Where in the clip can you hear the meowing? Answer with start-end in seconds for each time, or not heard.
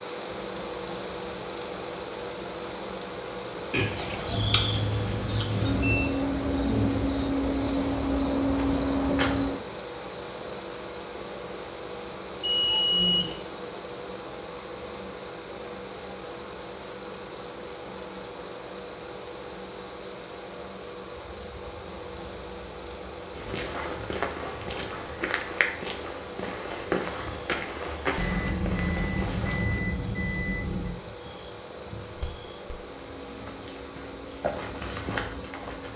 not heard.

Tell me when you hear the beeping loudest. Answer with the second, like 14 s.
13 s.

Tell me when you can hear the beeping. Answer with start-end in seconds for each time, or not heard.
4.3-6.2, 12.4-13.3, 28.1-30.9.